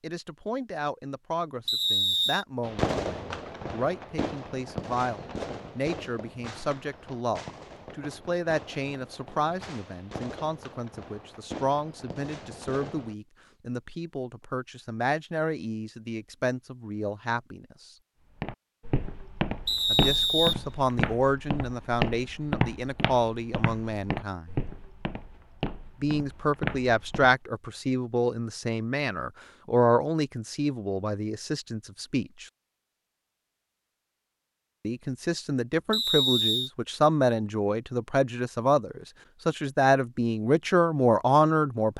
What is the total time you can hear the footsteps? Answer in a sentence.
The footsteps can be heard for 9 seconds in total.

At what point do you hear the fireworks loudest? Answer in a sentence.
The loudest moment of the fireworks is at 3 seconds.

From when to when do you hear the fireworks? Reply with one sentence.
You can hear the fireworks from 2.6 to 13.2 s.